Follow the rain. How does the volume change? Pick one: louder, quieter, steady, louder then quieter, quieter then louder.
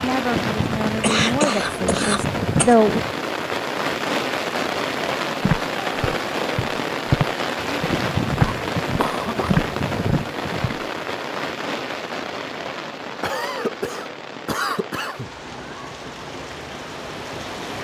quieter.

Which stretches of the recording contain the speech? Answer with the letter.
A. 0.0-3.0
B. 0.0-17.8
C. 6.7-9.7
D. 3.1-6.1
A.